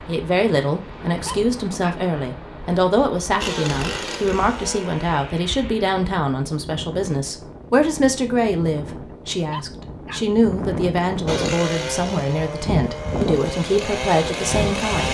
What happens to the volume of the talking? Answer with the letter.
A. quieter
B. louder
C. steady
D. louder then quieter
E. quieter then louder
C.